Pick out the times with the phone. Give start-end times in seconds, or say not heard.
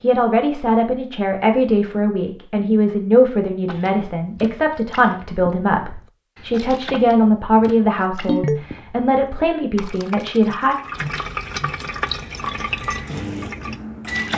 8.2-8.7.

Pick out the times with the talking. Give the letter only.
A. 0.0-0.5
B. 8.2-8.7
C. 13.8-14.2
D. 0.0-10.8
D.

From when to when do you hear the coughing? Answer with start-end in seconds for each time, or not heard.
not heard.